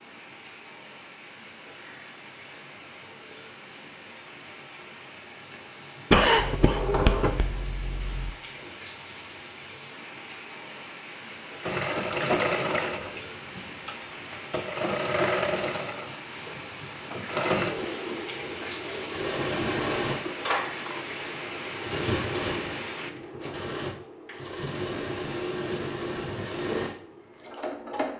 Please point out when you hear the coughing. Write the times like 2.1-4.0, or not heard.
6.1-7.5.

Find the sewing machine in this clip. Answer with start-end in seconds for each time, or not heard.
11.6-28.1.